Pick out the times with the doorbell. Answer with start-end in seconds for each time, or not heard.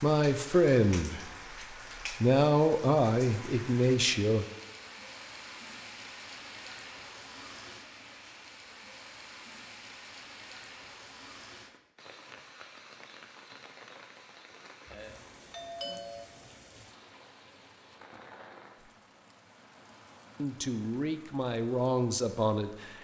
14.8-16.3.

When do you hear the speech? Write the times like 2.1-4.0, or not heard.
0.0-4.5, 20.4-22.9.